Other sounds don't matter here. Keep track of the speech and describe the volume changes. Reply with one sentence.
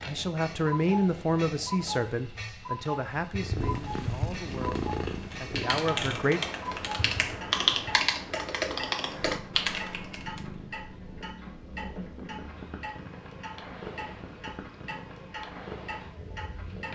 The volume of the speech goes down, then up.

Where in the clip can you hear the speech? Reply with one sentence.
The speech can be heard from 0.1 to 6.4 s.